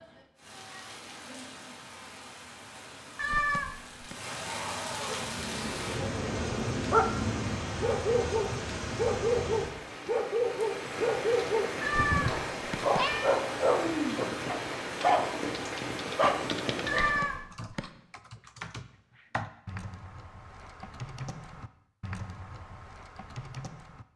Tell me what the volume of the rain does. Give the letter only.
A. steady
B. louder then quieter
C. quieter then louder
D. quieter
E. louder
E.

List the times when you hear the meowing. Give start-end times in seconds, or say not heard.
3.1-4.2, 11.8-13.3, 16.9-17.9.